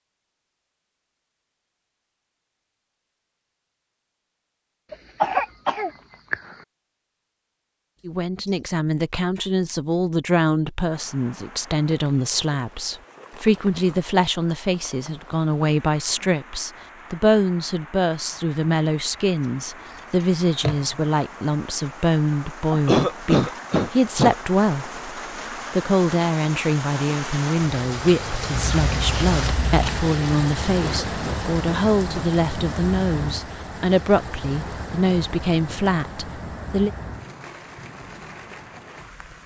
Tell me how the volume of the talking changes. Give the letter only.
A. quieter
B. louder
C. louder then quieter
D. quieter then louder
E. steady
E.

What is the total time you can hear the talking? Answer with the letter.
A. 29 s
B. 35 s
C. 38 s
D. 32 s
A.